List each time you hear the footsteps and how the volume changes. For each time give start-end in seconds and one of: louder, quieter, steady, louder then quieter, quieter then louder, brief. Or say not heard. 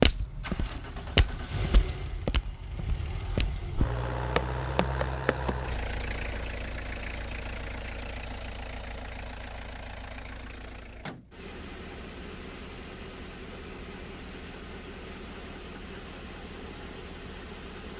0.0-5.5 quieter then louder.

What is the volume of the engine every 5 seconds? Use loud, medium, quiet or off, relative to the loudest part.
loud, loud, medium, medium.